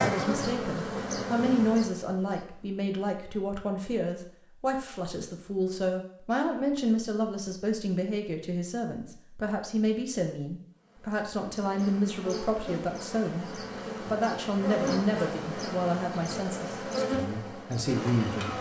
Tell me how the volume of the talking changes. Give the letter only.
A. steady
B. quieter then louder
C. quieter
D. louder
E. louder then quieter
A.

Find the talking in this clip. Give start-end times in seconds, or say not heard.
0.0-18.5.